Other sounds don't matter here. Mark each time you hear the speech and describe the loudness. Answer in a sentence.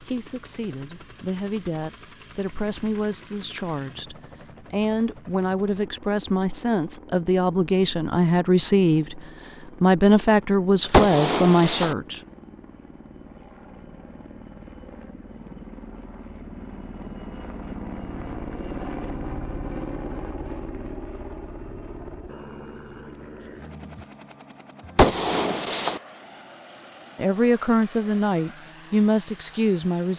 The speech can be heard from 0.0 to 9.2 s, getting louder; briefly from 9.8 to 12.2 s; and briefly from 27.1 to 30.1 s.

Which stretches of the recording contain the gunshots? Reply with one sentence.
The gunshots can be heard from 10.9 to 11.9 s and from 24.9 to 26.0 s.